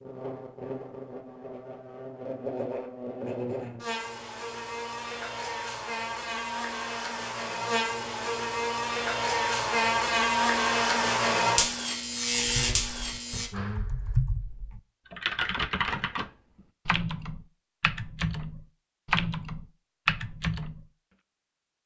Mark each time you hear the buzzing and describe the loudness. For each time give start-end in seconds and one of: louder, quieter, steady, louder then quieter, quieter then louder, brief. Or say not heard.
0.0-13.5 louder.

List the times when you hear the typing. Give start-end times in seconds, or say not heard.
12.6-20.9.